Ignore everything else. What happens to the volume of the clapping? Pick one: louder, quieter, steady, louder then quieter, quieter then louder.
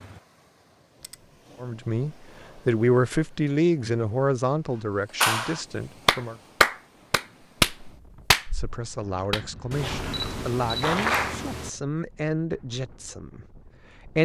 quieter.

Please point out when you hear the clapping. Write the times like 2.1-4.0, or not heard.
5.2-11.4.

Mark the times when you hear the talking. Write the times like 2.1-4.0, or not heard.
1.6-6.4, 8.5-14.1.